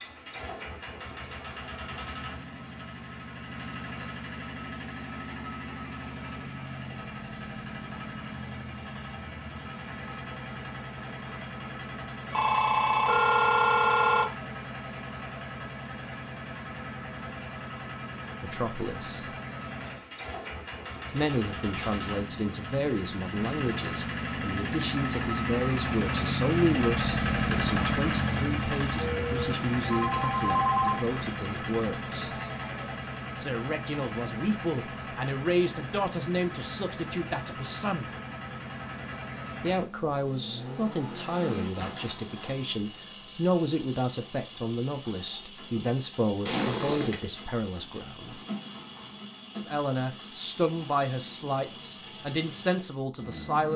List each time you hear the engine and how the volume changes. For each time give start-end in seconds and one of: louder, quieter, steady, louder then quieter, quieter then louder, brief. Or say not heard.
0.0-53.7 louder then quieter.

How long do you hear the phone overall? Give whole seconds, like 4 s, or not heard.
5 s.